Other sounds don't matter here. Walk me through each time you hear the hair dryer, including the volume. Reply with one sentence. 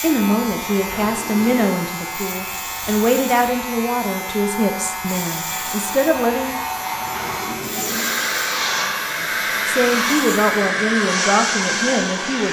You can hear the hair dryer from 0.1 to 12.4 s, getting louder.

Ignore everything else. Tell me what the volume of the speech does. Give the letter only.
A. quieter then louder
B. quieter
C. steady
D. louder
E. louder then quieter
C.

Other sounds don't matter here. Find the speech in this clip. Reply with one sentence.
You can hear the speech from 0.0 to 6.6 s and from 9.2 to 12.4 s.